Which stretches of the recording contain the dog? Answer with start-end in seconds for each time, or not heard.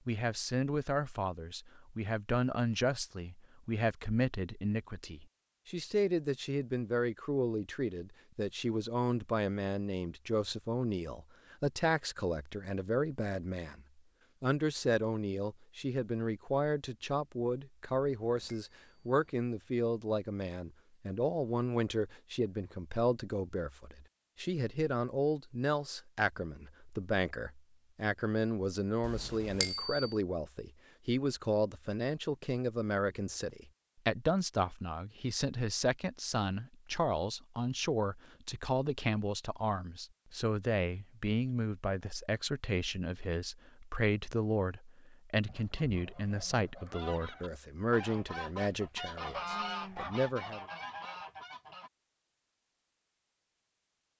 not heard.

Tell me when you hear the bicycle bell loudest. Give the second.
30 s.